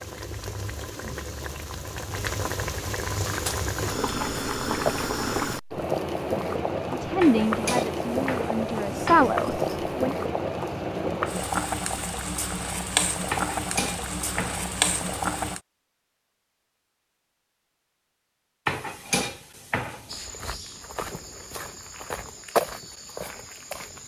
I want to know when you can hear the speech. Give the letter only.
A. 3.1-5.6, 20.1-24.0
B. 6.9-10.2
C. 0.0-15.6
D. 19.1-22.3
B.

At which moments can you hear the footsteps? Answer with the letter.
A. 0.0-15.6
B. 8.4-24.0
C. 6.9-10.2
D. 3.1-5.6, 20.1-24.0
D.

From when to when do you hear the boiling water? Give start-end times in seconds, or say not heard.
0.0-15.6.